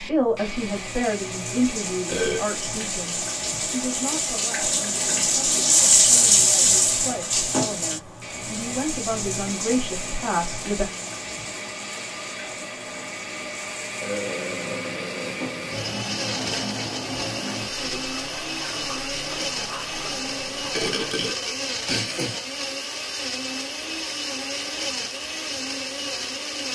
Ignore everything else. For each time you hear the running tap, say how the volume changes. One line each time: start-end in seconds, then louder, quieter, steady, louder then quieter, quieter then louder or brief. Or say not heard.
0.0-21.1 louder then quieter.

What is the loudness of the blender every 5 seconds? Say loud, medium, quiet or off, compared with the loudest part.
medium, medium, medium, loud, loud, loud.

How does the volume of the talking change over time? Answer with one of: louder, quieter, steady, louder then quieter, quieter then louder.
quieter then louder.